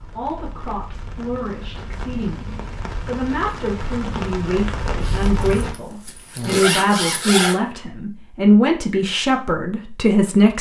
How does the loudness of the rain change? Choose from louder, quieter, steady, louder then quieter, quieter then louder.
louder.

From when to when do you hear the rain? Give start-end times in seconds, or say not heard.
0.0-5.8.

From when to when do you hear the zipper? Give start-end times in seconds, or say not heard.
5.0-7.5.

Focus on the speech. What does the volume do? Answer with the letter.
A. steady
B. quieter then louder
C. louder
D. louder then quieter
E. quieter
C.